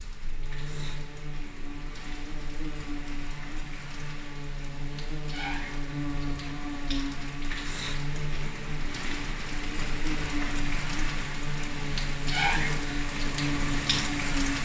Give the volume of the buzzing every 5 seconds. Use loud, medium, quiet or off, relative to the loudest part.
medium, loud, loud.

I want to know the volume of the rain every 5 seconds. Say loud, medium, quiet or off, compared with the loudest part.
quiet, medium, loud.